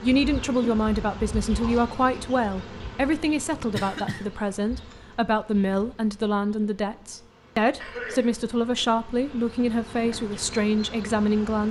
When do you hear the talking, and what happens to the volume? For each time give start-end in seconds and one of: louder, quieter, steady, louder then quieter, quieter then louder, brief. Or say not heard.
0.0-11.6 steady.